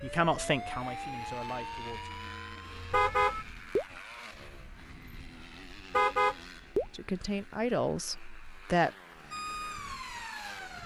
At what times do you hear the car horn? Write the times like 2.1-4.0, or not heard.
2.9-3.9, 5.9-6.8.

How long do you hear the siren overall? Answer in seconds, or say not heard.
5 s.